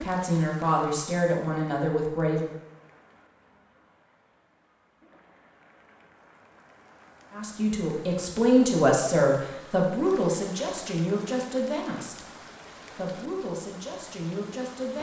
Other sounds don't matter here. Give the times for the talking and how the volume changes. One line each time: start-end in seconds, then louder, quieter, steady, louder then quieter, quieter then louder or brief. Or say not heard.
0.0-2.5 brief
7.3-14.9 quieter.